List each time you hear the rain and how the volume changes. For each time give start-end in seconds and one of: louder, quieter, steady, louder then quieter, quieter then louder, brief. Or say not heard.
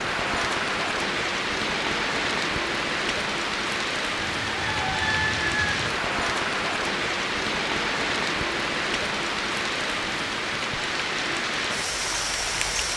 0.0-12.9 steady.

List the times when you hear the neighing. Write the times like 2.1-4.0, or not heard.
not heard.